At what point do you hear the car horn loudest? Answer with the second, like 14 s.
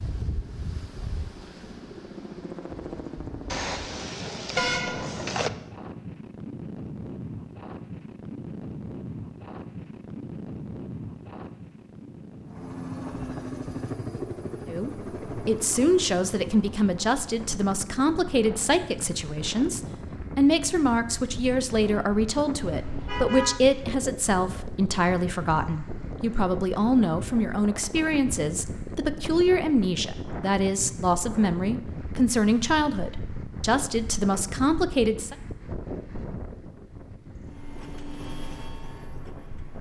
5 s.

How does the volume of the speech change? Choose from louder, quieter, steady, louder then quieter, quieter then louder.
steady.